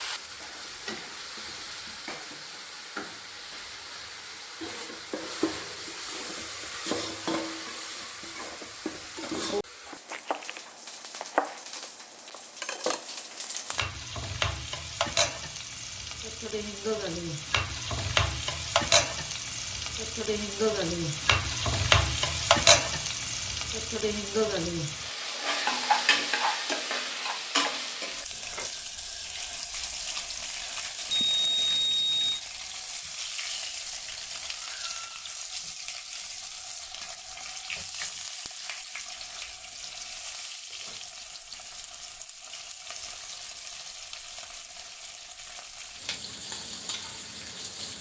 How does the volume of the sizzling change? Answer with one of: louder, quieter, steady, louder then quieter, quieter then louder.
louder then quieter.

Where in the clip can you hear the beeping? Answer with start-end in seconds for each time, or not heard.
31.1-32.4.